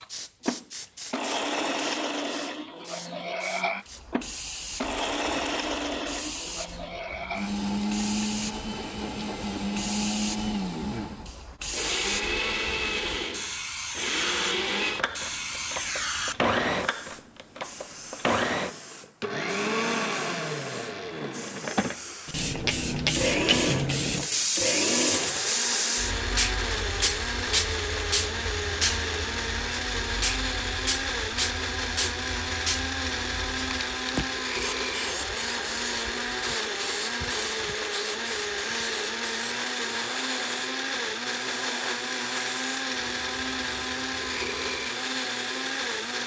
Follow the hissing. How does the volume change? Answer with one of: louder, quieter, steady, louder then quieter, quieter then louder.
louder then quieter.